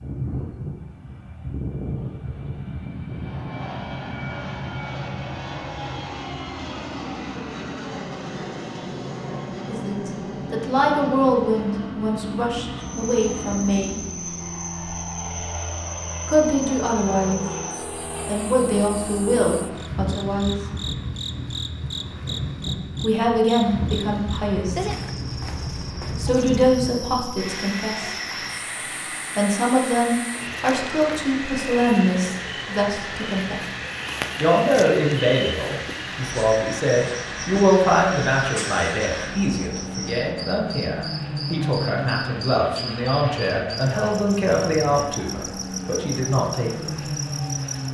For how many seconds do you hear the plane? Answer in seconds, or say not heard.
48 s.